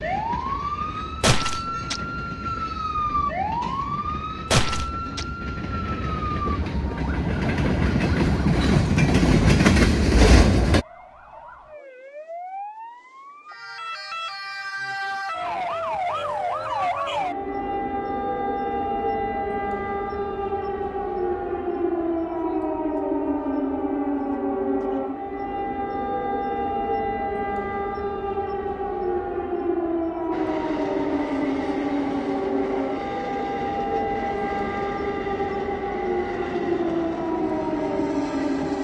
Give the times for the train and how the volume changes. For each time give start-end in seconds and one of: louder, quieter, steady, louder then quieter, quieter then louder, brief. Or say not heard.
0.0-10.8 louder
30.3-38.7 steady.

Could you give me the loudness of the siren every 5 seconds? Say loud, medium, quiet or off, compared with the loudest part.
loud, medium, medium, loud, loud, loud, loud, loud.